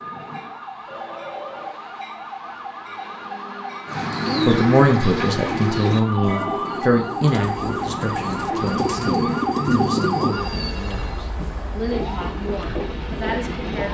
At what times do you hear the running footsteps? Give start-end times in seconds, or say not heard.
not heard.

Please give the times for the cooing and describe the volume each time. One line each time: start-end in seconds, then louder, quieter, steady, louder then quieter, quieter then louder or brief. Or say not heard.
3.9-10.4 quieter then louder.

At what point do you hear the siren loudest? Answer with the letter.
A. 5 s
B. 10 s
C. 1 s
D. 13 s
B.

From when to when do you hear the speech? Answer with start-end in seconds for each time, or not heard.
4.5-13.8.